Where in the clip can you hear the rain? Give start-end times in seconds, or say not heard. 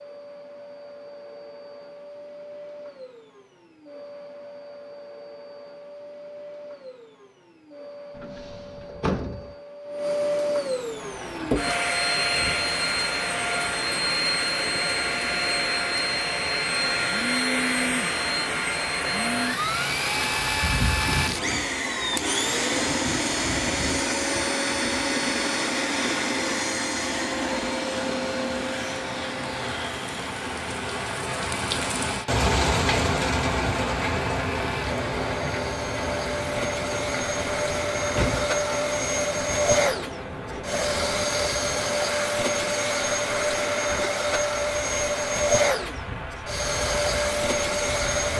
10.8-48.3.